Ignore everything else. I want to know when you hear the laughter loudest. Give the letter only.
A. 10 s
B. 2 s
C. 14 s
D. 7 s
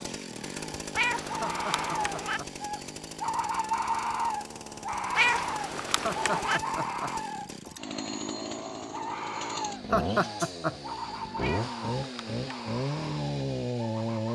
A.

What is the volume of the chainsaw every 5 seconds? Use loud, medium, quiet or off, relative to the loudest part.
medium, medium, loud.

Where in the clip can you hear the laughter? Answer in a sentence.
The laughter can be heard from 1.4 to 2.5 s, from 6.0 to 7.1 s and from 9.9 to 10.9 s.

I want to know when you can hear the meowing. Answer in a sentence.
The meowing can be heard from 0.9 to 2.4 s, from 5.2 to 6.6 s and from 11.4 to 12.7 s.